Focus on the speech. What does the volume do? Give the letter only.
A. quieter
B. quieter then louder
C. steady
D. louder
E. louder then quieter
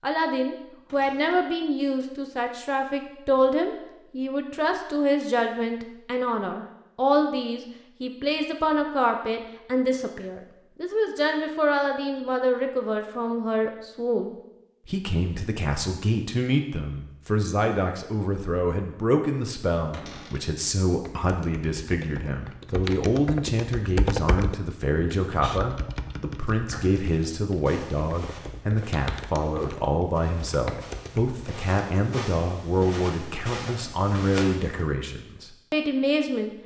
C.